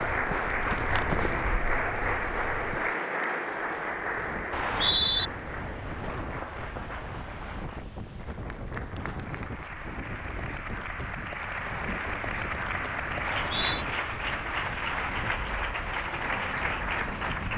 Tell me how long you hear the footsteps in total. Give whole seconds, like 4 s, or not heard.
3 s.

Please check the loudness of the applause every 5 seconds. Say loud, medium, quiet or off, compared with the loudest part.
loud, medium, loud, loud.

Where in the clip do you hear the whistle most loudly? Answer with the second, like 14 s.
5 s.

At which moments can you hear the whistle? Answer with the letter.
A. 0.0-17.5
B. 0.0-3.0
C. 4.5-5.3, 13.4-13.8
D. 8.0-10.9
C.